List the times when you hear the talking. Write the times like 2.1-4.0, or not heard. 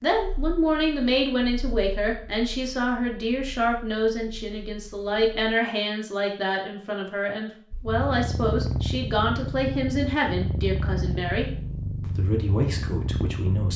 0.0-13.7.